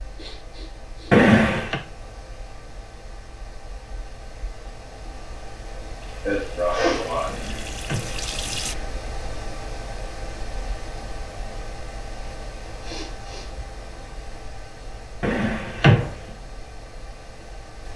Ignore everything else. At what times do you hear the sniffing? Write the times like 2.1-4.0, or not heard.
0.1-1.2, 6.2-7.3, 12.8-13.5.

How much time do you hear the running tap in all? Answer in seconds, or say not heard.
3 s.